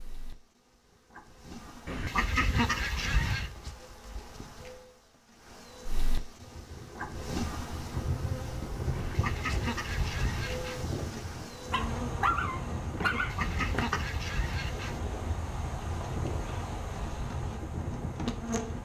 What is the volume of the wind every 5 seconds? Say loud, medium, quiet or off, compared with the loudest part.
off, loud, loud, loud.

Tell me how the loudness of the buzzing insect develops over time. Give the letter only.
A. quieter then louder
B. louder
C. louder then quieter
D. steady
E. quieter
B.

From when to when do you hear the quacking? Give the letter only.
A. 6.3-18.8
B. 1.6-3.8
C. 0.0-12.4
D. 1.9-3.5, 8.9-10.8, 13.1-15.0
D.